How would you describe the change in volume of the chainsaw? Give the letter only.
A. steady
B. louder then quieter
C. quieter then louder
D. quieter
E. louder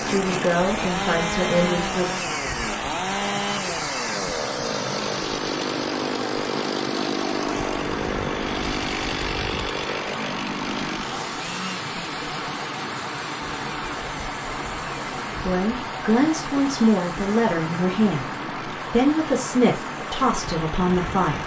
D.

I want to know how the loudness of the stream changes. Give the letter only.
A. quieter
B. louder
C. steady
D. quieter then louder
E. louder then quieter
C.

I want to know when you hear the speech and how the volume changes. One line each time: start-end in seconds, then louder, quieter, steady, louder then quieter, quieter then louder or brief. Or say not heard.
0.1-2.1 brief
15.4-21.4 steady.